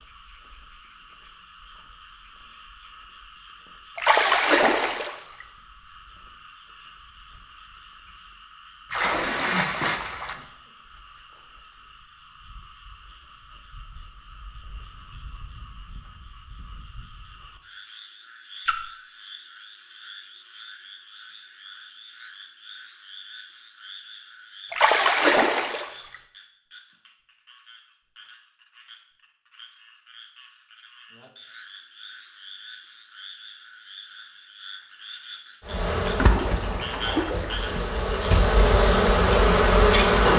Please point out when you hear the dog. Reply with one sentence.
The dog can't be heard in this clip.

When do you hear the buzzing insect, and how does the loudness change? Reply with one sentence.
You can hear the buzzing insect from 35.6 to 40.3 s, getting quieter then louder.